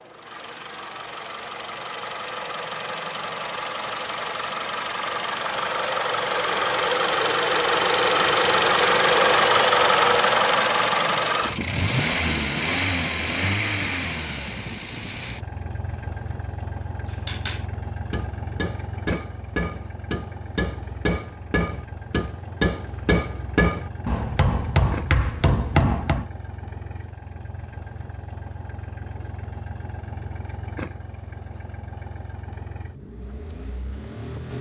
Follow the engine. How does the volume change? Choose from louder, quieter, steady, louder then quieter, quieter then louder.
louder then quieter.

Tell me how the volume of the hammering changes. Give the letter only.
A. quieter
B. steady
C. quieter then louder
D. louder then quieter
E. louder
E.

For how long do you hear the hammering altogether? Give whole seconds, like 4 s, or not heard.
9 s.